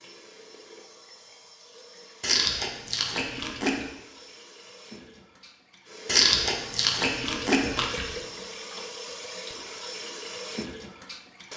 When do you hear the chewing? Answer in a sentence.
You can hear the chewing from 2.2 to 3.9 s and from 6.0 to 8.1 s.